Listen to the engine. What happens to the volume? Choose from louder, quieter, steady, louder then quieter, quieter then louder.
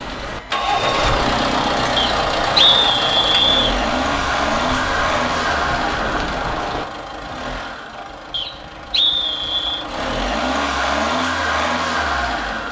quieter then louder.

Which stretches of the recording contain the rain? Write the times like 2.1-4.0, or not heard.
0.0-6.8.